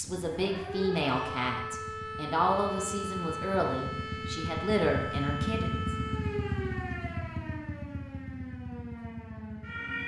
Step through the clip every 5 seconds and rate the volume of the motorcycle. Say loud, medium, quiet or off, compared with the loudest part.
medium, loud.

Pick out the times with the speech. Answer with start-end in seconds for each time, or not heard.
0.0-5.8.